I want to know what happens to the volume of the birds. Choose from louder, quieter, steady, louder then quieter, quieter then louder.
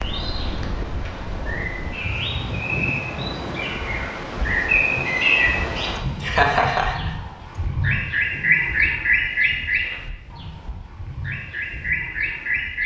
louder then quieter.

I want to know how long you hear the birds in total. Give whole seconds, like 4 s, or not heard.
13 s.